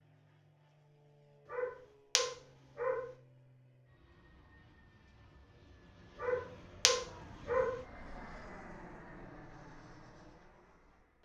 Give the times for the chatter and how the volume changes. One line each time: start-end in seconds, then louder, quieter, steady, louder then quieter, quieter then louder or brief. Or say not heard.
not heard.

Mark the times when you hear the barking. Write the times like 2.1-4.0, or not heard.
1.5-3.0, 6.2-7.8.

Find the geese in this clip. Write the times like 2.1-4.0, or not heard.
not heard.